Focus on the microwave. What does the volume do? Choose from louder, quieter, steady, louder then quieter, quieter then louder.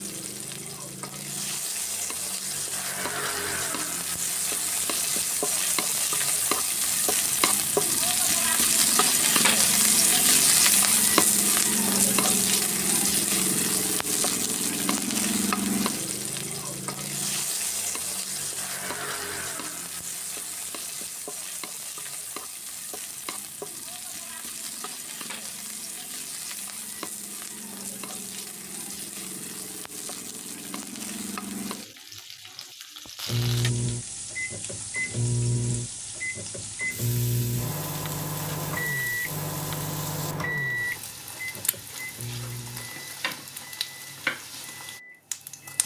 quieter.